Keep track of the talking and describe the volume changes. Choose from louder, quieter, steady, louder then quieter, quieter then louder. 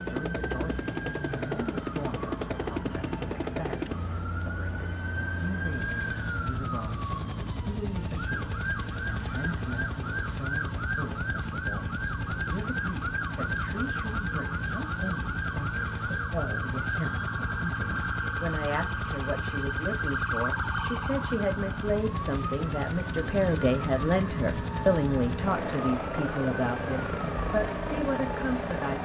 louder.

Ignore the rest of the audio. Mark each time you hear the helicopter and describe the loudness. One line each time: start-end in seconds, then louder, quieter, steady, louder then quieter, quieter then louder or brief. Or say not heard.
0.0-29.0 steady.